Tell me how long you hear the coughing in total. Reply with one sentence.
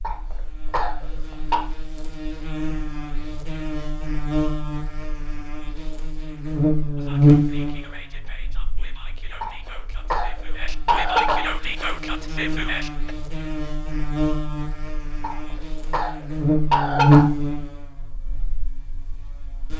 You can hear the coughing for 6 seconds altogether.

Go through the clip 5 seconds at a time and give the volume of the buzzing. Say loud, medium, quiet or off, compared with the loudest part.
medium, loud, medium, loud.